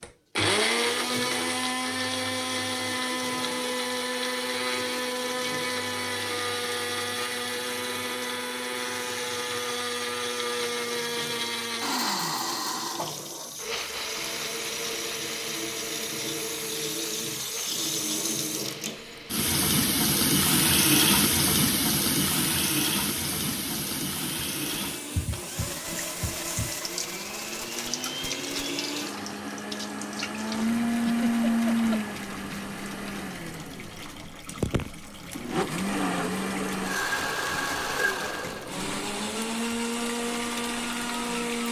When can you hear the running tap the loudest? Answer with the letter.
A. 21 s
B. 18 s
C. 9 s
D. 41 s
A.